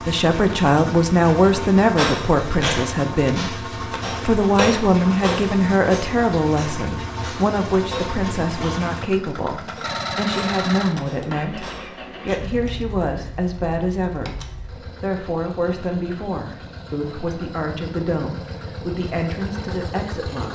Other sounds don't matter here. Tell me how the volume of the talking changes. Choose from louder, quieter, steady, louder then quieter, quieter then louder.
quieter.